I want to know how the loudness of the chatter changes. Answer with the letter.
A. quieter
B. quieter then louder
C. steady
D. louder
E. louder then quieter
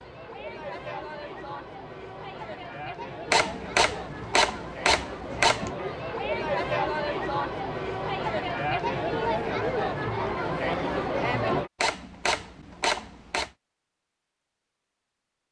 D.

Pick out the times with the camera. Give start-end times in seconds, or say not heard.
3.3-5.8, 11.8-13.5.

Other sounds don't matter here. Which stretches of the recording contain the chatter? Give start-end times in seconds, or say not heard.
0.0-11.7.